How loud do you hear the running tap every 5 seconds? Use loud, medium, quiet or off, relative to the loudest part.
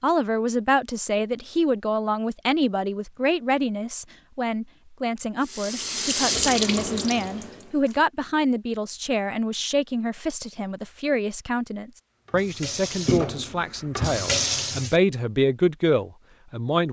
off, loud, loud, off.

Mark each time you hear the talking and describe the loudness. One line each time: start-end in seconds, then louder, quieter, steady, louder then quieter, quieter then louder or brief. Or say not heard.
0.0-16.8 steady.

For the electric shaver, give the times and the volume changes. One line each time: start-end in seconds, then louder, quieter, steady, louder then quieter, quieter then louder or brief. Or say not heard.
not heard.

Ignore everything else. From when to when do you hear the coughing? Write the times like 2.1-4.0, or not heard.
not heard.